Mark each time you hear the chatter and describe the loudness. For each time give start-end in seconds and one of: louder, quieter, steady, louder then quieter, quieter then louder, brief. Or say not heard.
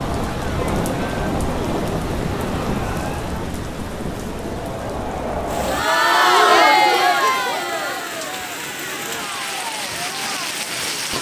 0.0-11.1 louder then quieter.